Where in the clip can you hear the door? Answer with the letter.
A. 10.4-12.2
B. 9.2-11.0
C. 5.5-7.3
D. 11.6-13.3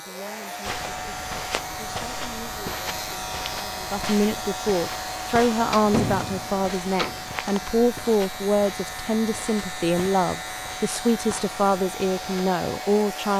C.